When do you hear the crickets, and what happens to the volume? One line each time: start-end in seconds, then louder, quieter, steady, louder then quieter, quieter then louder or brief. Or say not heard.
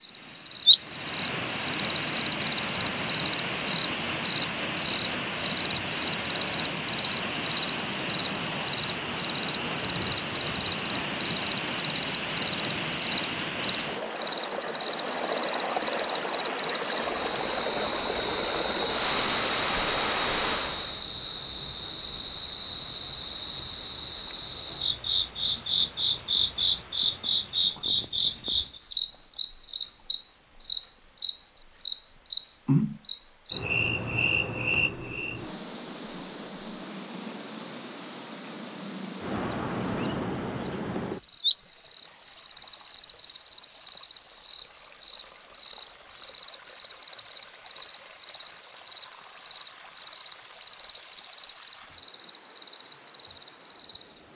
0.0-54.3 quieter.